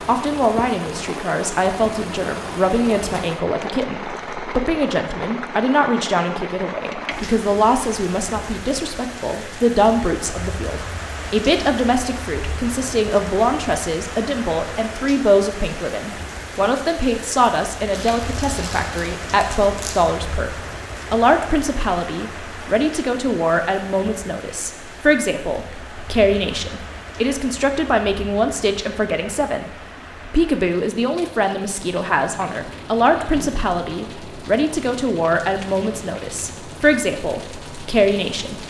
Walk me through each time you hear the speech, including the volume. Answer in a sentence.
You can hear the speech from 0.1 to 38.6 s, at a steady volume.